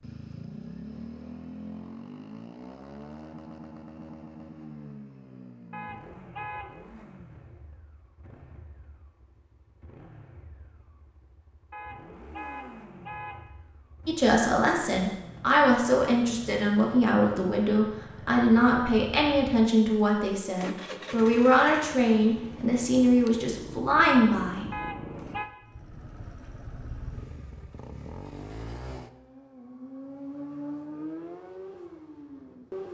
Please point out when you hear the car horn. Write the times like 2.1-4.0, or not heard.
5.7-6.7, 11.7-13.4, 24.7-25.5.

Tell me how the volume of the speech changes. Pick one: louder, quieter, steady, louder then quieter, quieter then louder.
steady.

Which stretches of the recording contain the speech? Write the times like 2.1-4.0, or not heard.
14.1-24.6.